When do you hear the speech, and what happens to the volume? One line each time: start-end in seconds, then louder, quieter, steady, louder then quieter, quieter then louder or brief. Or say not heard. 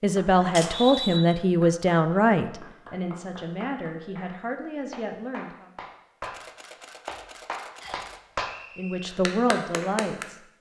0.0-5.7 quieter
8.8-10.4 brief.